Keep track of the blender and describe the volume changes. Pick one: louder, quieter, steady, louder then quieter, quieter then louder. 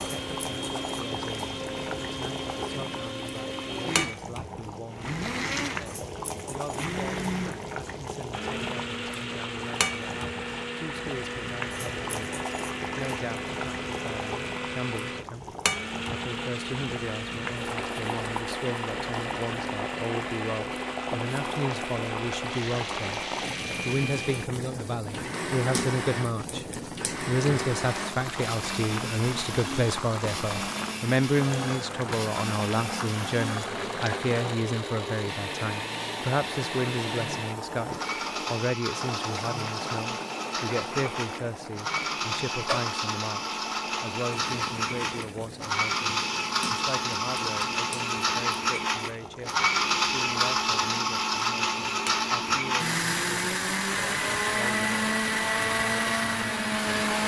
louder.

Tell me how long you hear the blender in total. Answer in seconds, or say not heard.
57 s.